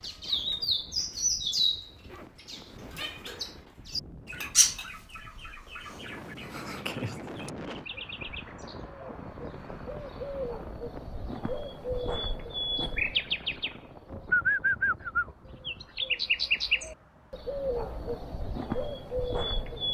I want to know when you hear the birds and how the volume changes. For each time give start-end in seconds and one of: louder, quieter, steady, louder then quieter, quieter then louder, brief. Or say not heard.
0.0-19.9 quieter then louder.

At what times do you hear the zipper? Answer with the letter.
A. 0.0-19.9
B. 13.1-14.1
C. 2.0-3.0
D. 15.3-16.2
C.